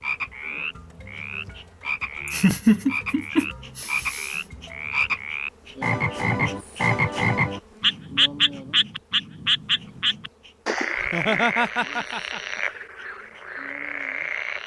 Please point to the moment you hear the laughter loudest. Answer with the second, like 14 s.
3 s.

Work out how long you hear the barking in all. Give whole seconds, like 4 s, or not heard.
not heard.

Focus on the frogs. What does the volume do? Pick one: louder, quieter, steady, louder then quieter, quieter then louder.
louder then quieter.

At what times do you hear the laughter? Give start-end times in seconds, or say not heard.
2.2-4.4, 11.0-12.6.